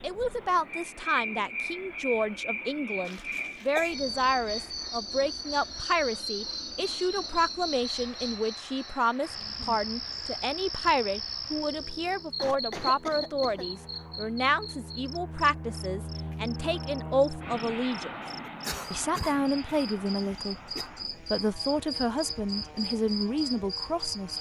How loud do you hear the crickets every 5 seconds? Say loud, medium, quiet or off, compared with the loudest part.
loud, loud, loud, medium, loud.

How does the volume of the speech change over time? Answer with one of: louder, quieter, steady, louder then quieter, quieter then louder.
steady.